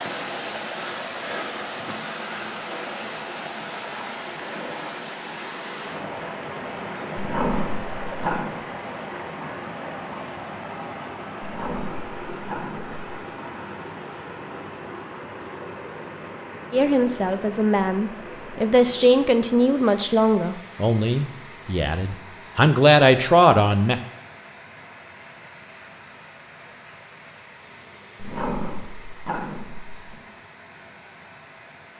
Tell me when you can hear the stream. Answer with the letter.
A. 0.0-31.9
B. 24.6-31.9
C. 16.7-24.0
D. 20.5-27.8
A.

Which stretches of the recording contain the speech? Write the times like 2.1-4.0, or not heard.
16.7-24.0.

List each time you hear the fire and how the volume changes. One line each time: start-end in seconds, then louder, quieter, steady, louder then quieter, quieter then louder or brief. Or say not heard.
not heard.